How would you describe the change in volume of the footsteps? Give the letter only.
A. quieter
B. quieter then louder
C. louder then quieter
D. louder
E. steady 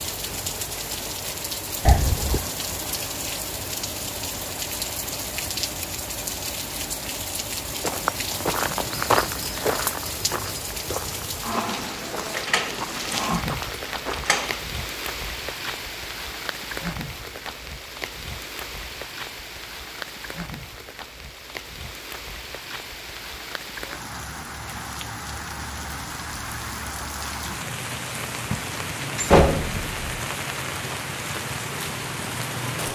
A.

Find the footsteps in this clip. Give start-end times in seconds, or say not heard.
7.7-14.3.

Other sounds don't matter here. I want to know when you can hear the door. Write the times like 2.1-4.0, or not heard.
1.9-2.5, 12.3-14.6, 29.1-29.9.